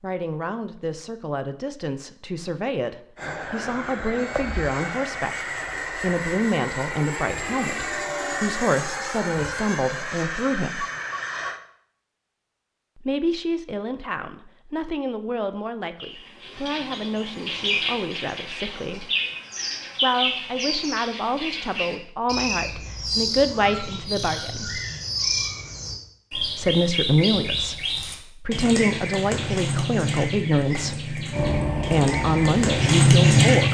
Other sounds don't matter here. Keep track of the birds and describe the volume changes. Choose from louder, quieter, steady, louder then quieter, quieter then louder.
louder.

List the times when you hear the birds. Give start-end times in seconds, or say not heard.
16.0-33.6.